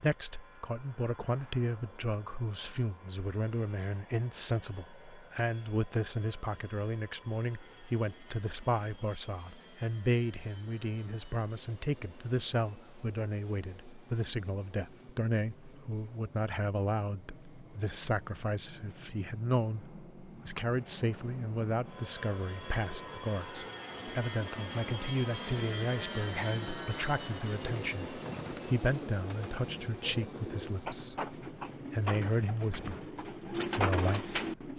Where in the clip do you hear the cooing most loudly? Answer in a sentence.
The volume of the cooing peaks at 34 seconds.